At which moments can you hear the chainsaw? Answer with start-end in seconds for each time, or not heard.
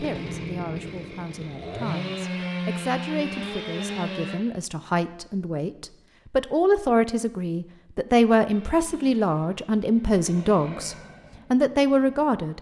0.0-4.4, 8.4-12.3.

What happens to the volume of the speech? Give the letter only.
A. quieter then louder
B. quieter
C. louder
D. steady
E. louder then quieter
C.